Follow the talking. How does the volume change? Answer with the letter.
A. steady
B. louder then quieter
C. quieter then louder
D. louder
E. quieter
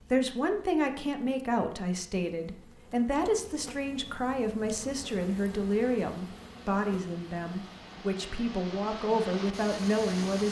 A.